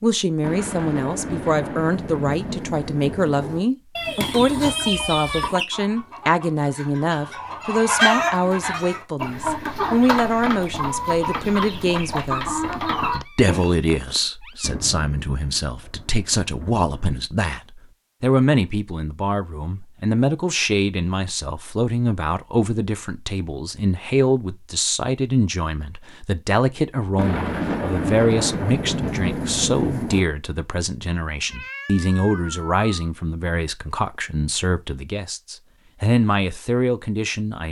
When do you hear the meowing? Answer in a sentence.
You can hear the meowing from 4.0 to 5.5 s, from 12.7 to 14.7 s and from 31.4 to 32.9 s.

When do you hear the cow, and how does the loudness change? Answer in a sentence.
The cow can't be heard in this clip.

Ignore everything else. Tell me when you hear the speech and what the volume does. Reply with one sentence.
You can hear the speech from 0.0 to 37.6 s, at a steady volume.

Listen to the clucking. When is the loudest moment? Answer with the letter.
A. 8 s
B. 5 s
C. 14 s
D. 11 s
A.